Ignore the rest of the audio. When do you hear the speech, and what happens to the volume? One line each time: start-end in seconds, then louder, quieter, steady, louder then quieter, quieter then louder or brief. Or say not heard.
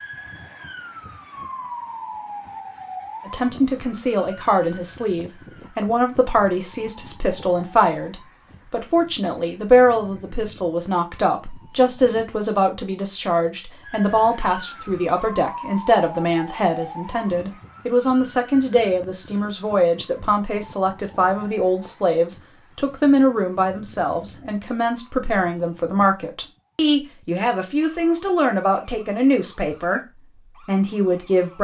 3.2-30.0 steady
30.6-31.5 brief.